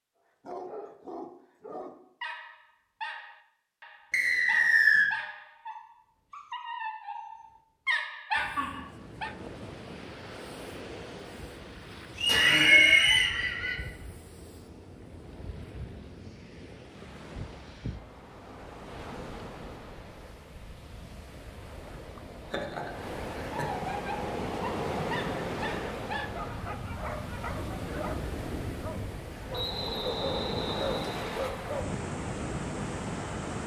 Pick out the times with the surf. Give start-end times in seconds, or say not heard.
8.3-33.6.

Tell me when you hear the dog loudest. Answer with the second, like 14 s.
8 s.